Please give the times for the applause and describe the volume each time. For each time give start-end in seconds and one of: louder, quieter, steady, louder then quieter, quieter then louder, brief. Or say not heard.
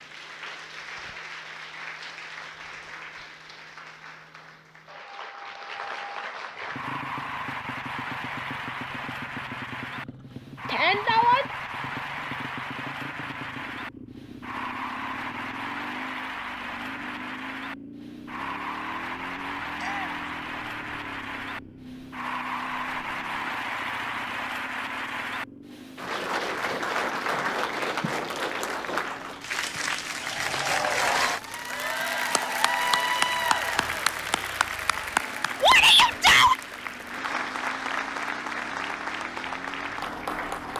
0.0-40.7 louder.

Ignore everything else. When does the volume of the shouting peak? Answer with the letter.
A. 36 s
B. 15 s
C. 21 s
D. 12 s
A.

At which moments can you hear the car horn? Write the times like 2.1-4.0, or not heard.
not heard.